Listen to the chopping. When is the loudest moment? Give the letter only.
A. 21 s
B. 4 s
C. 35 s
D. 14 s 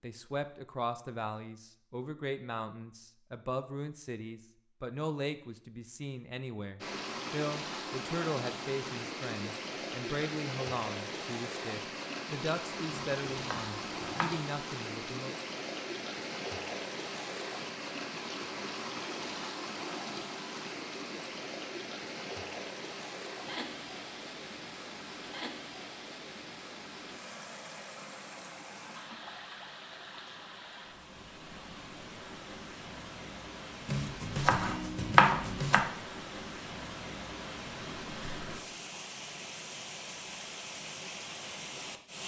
C.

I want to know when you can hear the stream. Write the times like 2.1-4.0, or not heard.
6.8-42.2.